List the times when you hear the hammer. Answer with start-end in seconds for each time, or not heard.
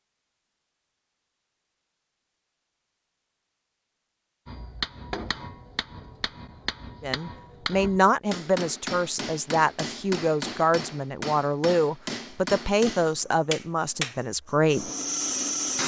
4.5-14.2.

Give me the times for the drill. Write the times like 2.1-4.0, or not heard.
12.9-15.8.